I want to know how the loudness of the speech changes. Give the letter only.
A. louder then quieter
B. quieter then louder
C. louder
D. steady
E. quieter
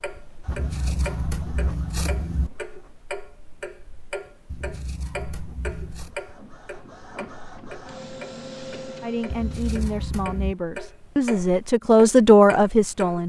C.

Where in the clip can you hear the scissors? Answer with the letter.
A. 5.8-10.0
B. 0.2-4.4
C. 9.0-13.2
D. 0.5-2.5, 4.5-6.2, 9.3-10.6
D.